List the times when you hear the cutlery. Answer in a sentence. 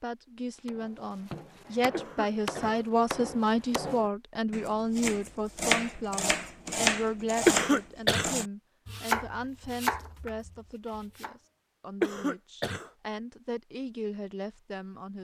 The cutlery can't be heard in this clip.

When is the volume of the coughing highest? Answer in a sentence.
The volume of the coughing peaks at 8 seconds.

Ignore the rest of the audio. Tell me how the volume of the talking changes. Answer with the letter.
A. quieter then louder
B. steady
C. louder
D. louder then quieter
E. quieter
E.